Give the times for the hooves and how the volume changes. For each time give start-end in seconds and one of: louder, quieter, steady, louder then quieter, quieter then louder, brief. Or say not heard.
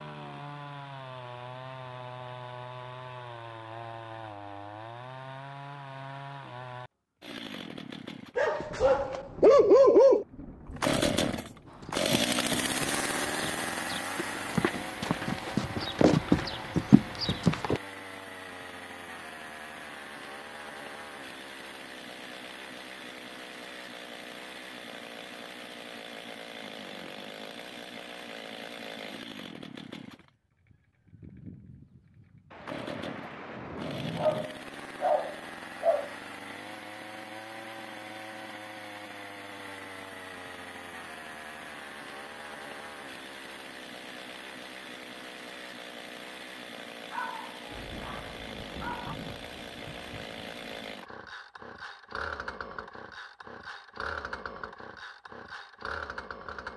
11.7-17.8 louder.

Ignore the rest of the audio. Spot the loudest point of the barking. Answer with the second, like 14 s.
10 s.